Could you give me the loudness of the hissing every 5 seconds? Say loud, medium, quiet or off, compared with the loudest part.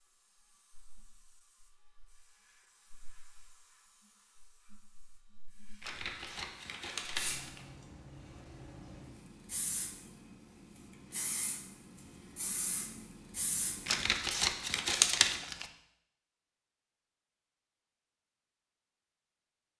quiet, loud, loud, off.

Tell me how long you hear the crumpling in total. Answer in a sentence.
You can hear the crumpling for 4 seconds altogether.